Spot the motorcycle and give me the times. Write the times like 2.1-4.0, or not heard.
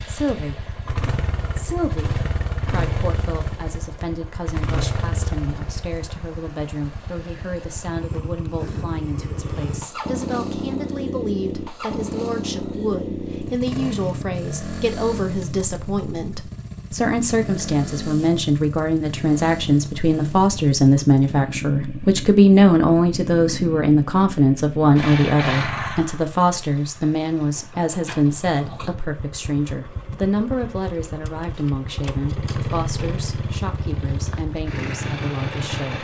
0.0-35.9.